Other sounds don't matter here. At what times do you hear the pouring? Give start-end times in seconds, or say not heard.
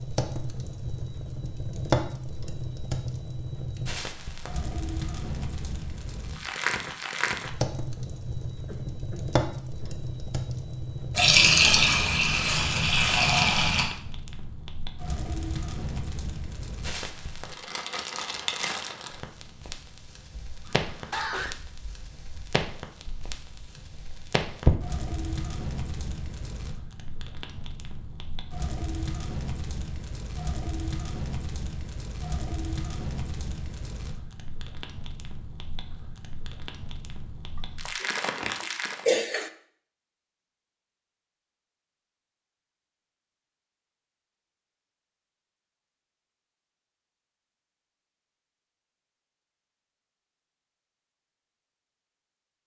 11.2-13.8.